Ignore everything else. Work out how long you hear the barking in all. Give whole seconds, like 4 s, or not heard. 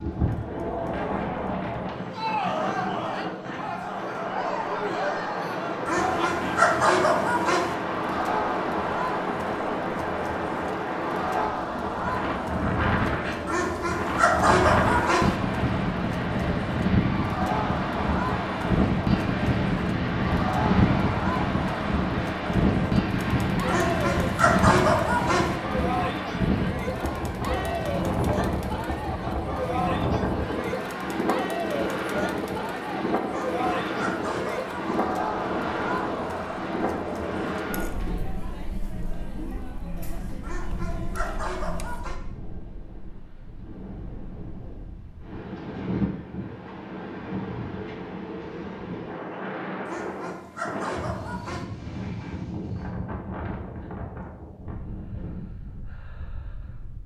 11 s.